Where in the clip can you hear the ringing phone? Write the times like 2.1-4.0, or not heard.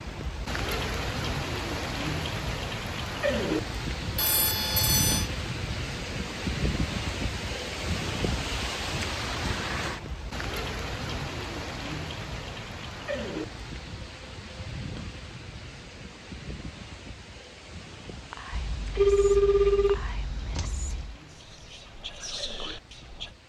4.2-5.3, 18.5-21.1.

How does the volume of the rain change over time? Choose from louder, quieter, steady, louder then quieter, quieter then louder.
quieter.